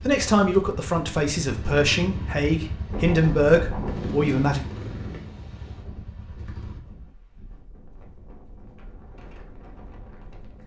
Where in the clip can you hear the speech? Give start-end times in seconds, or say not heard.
0.0-4.7.